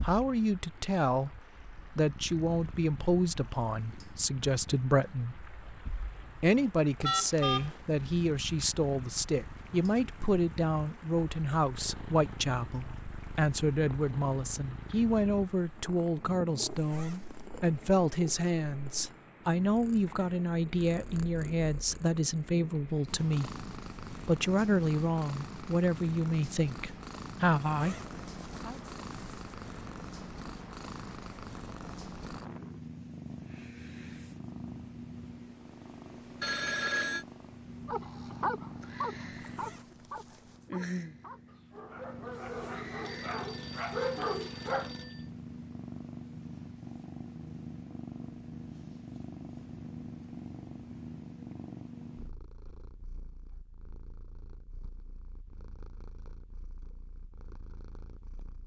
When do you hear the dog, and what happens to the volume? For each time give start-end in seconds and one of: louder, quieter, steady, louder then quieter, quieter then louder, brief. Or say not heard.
37.9-44.9 quieter then louder.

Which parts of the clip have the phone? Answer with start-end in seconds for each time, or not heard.
7.0-7.8, 36.4-37.2, 43.0-45.2.